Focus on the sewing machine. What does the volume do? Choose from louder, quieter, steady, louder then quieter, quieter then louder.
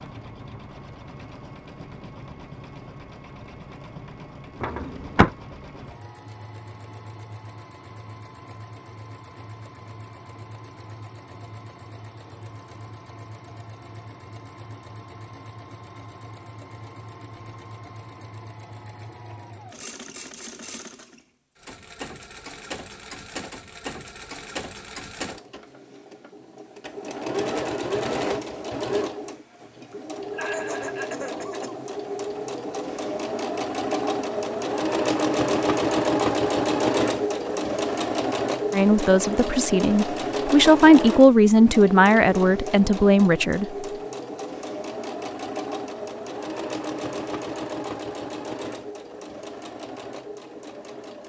louder then quieter.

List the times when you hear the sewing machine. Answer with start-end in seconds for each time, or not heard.
0.0-51.2.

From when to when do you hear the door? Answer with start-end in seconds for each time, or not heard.
4.6-5.3.